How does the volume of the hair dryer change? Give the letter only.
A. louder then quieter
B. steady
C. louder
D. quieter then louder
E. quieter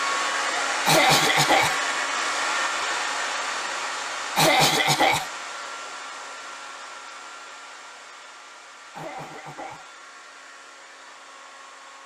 E.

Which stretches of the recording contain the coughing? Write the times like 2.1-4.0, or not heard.
0.8-1.8, 4.3-5.3, 8.9-9.8.